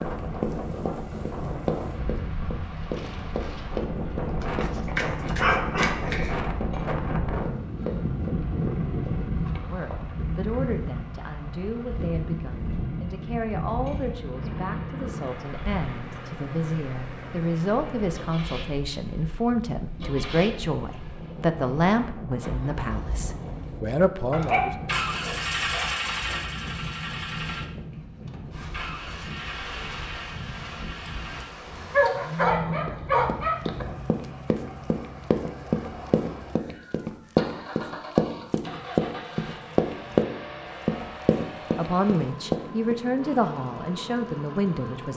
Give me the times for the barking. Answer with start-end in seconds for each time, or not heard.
4.4-6.3, 24.3-25.9, 31.9-33.9.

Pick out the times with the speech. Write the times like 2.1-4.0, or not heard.
9.5-24.8, 41.8-45.1.